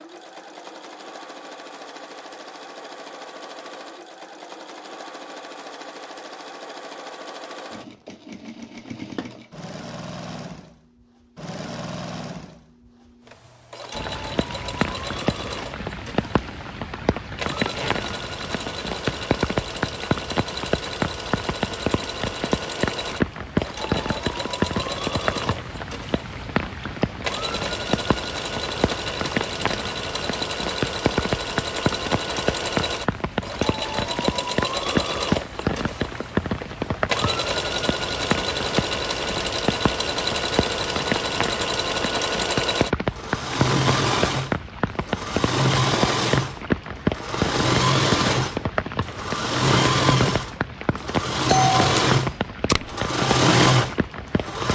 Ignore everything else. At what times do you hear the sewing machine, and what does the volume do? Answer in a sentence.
You can hear the sewing machine from 0.0 to 54.7 s, getting louder.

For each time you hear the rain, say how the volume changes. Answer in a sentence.
You can hear the rain from 13.9 to 54.7 s, at a steady volume.